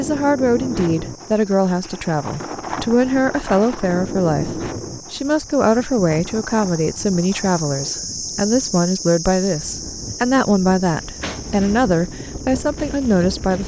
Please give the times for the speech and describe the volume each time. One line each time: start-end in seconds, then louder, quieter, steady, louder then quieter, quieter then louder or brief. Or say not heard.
0.0-13.6 steady.